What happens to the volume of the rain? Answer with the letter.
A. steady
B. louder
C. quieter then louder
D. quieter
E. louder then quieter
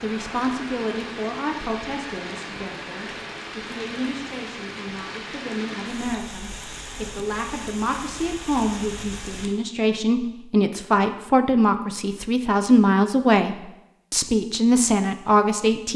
A.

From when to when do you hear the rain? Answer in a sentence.
The rain can be heard from 0.0 to 9.6 s.